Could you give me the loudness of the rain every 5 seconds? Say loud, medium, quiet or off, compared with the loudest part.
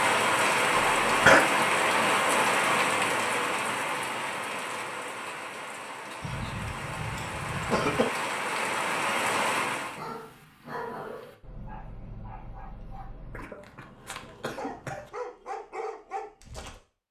loud, medium, off, off.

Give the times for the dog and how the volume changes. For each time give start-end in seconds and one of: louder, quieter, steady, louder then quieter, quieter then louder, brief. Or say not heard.
9.8-16.8 quieter then louder.